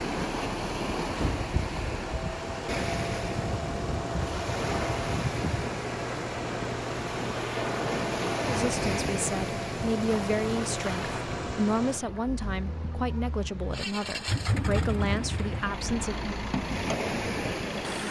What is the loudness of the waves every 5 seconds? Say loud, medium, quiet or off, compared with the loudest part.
loud, loud, medium, loud.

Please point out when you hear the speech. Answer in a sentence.
You can hear the speech from 8.4 to 16.4 s.